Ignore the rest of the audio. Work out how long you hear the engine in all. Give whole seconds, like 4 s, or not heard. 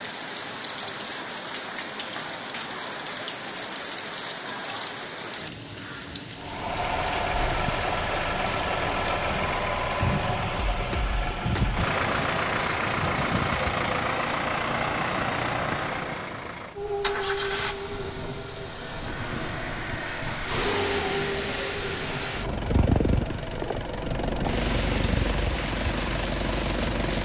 21 s.